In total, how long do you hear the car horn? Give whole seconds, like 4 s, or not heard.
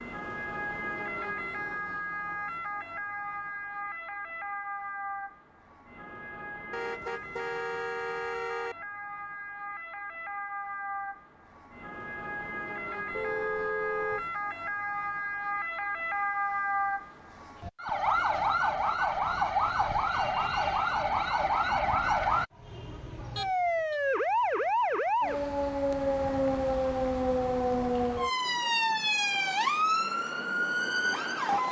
4 s.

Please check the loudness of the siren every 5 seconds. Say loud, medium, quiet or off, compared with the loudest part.
medium, quiet, medium, loud, loud, loud, loud.